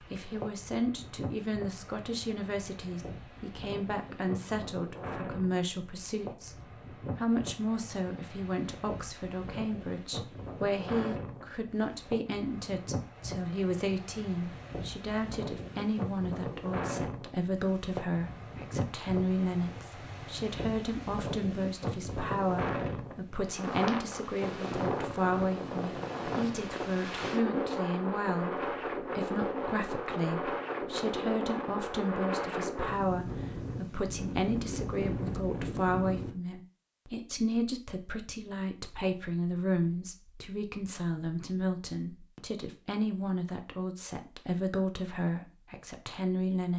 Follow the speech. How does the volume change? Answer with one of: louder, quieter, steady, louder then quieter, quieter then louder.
steady.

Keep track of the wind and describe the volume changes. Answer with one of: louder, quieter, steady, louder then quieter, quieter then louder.
louder.